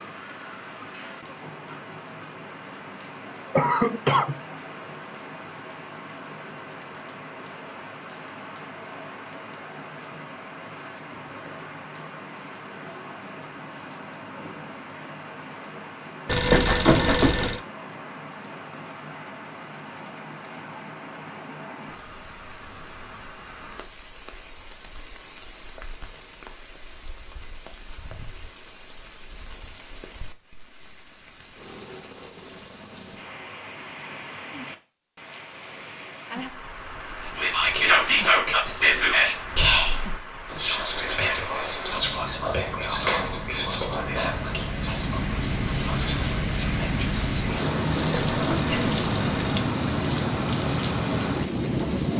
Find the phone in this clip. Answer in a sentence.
The phone can be heard from 16.2 to 17.6 s and from 48.0 to 49.7 s.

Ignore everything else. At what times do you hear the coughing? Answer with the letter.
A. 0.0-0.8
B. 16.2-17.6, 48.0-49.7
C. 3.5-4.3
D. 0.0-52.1
C.